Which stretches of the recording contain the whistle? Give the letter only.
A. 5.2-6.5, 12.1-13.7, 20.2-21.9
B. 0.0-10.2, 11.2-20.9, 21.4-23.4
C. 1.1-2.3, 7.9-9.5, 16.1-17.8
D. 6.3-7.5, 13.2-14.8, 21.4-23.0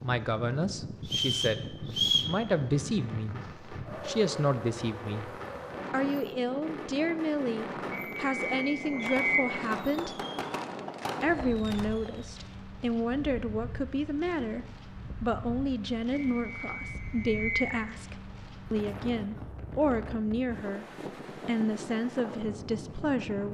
C.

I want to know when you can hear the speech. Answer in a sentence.
The speech can be heard from 0.0 to 10.2 s, from 11.2 to 20.9 s and from 21.4 to 23.4 s.